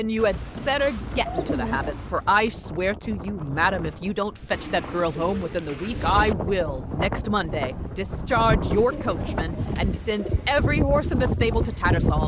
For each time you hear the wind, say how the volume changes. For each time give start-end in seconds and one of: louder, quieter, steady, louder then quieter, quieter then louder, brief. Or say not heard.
0.0-12.2 louder.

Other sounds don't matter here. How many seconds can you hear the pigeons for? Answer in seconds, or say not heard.
6 s.